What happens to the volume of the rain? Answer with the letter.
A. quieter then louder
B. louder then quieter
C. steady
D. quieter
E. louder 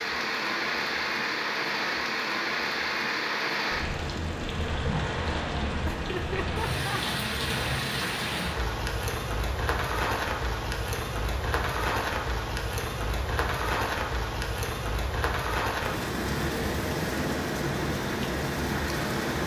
C.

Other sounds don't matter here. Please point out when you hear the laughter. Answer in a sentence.
The laughter can be heard from 5.8 to 7.0 s.